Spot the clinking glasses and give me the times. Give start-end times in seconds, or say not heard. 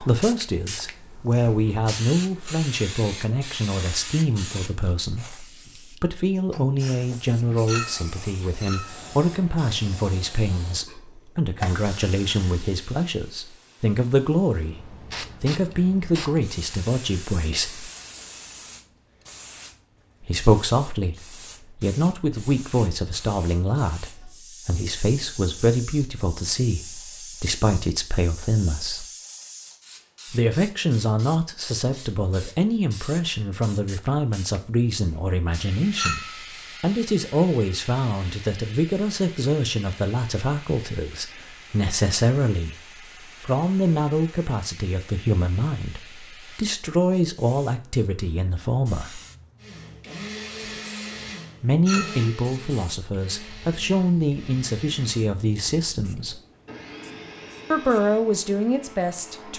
7.7-9.1, 36.0-36.5, 51.9-52.3.